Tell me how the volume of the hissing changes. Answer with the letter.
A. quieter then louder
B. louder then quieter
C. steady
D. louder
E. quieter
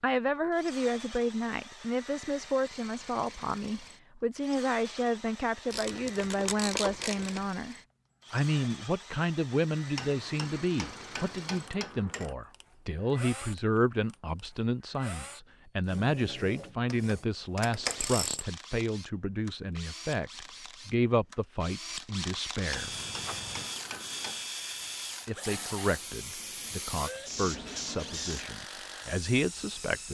D.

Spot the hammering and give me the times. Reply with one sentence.
You can hear the hammering from 9.9 to 12.3 s and from 22.7 to 24.5 s.